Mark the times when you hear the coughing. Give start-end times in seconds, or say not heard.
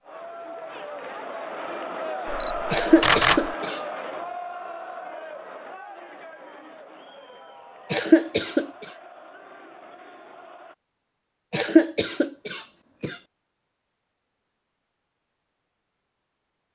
2.7-3.8, 7.9-8.8, 11.5-13.2.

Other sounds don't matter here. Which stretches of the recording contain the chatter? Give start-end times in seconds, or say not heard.
0.0-10.8.